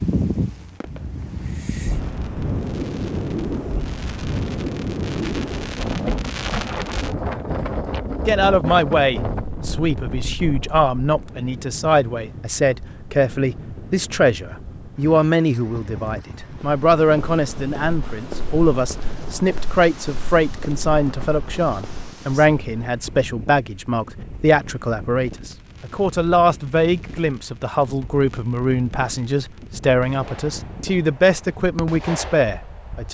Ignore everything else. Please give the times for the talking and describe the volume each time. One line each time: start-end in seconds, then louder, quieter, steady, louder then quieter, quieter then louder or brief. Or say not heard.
8.2-33.0 steady.